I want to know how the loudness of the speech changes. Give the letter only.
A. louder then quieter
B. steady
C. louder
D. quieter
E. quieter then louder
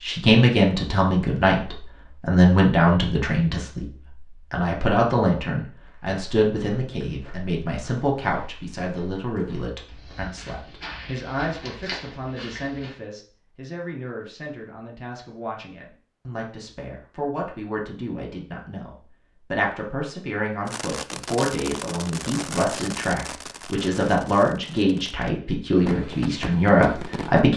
E.